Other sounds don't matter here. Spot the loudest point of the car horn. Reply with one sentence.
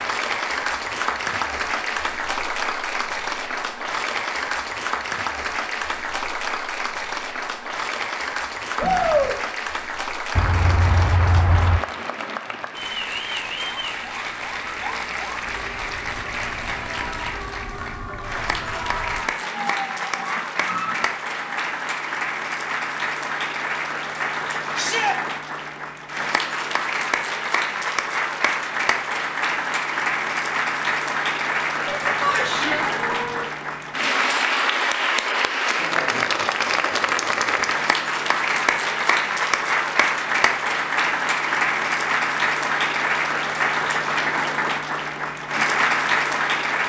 The loudest moment of the car horn is at 11 seconds.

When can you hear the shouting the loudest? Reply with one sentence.
The loudest moment of the shouting is at 9 seconds.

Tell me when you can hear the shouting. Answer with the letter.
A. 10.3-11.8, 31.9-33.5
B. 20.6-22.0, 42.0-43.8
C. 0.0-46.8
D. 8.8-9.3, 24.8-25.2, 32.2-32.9
D.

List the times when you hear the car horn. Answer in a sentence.
The car horn can be heard from 10.3 to 11.8 s and from 31.9 to 33.5 s.